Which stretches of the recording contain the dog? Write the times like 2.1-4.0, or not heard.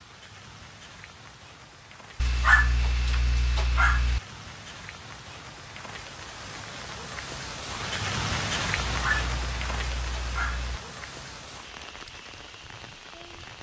2.2-4.2, 8.8-10.8.